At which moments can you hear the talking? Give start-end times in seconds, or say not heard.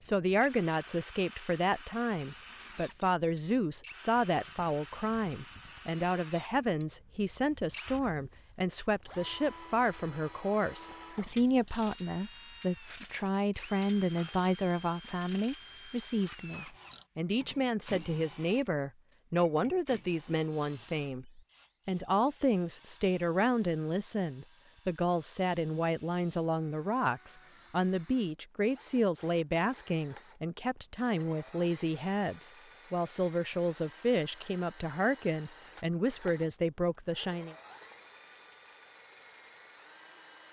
0.0-37.5.